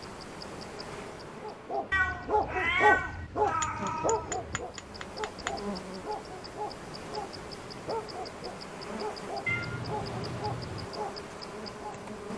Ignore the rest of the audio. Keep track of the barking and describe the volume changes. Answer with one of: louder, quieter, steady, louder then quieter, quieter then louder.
quieter.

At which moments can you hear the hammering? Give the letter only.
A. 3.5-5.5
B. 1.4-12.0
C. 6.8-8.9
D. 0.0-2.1
A.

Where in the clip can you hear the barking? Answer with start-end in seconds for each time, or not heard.
1.4-12.0.